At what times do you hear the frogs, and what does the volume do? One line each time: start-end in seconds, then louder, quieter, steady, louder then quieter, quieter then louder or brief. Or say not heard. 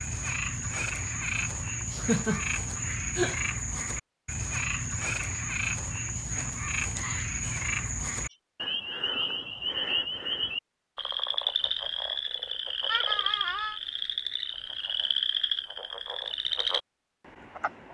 0.0-17.8 steady.